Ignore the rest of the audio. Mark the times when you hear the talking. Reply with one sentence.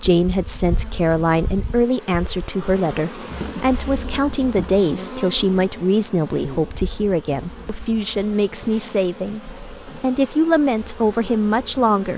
The talking can be heard from 0.0 to 12.1 s.